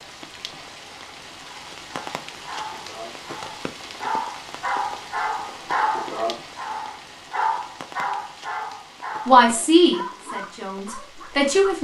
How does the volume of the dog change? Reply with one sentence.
The volume of the dog goes up, then down.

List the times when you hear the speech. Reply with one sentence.
You can hear the speech from 9.2 to 11.8 s.